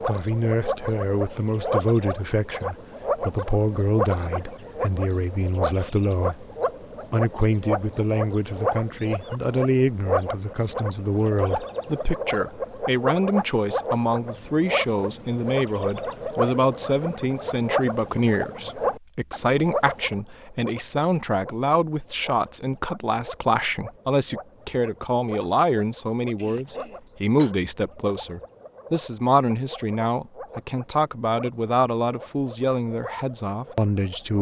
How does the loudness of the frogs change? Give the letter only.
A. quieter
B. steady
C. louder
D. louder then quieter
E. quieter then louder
A.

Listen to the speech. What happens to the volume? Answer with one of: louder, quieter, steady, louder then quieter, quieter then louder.
steady.